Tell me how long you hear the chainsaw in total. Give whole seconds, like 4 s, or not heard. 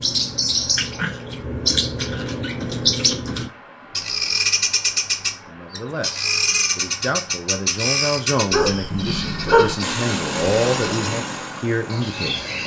3 s.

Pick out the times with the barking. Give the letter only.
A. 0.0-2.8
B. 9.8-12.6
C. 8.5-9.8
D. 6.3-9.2
C.